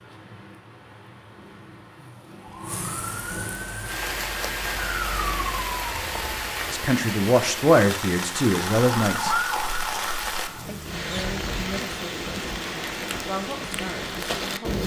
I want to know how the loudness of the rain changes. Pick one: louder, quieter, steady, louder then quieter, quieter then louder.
louder.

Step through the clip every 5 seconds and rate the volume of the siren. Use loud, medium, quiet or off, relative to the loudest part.
medium, loud, medium.